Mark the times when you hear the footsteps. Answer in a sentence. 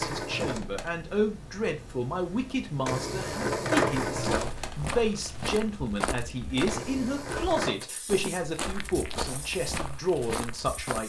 You can hear the footsteps from 4.1 to 11.0 s.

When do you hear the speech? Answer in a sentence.
The speech can be heard from 0.0 to 11.0 s.